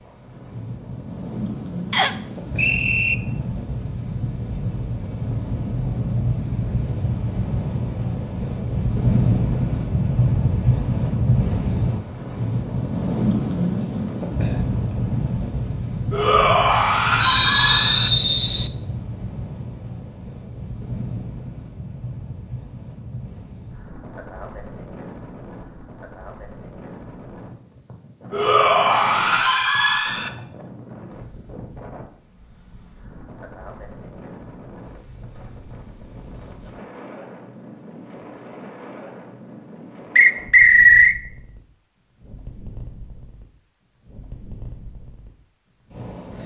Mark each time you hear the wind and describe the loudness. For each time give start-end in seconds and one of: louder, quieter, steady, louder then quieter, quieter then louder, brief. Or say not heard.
0.0-46.4 quieter.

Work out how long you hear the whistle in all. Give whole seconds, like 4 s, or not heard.
4 s.